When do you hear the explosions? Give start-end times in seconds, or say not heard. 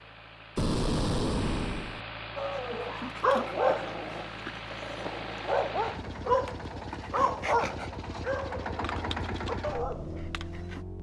0.6-2.0.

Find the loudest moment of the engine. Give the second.
9 s.